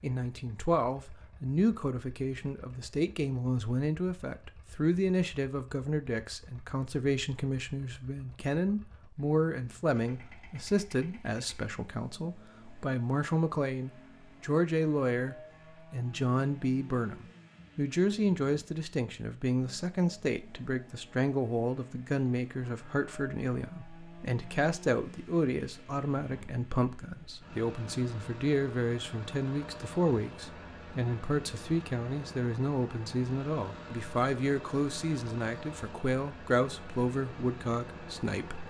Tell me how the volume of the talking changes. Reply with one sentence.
The volume of the talking stays about the same.